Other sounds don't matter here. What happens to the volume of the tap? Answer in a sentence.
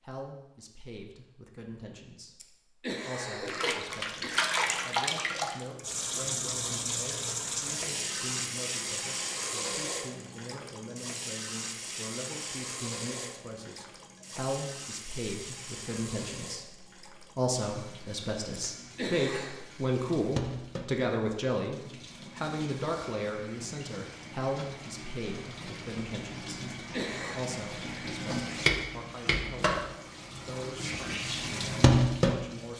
The volume of the tap goes down, then up.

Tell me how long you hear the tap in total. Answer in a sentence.
You can hear the tap for 29 seconds altogether.